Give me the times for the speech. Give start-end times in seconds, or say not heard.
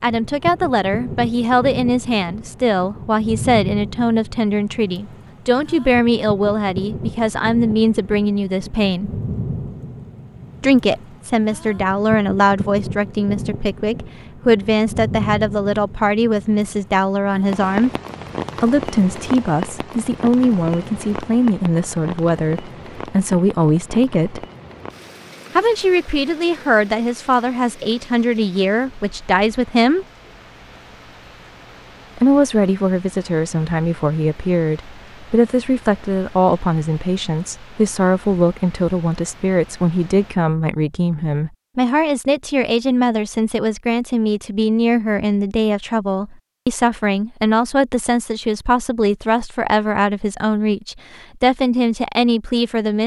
0.0-9.1, 10.6-17.9, 18.6-24.4, 25.6-30.1, 32.1-53.0.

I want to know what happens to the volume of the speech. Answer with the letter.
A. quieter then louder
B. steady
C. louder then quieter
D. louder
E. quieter
B.